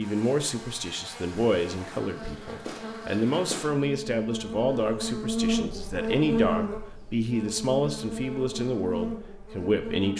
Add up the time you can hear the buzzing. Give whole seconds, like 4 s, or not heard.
10 s.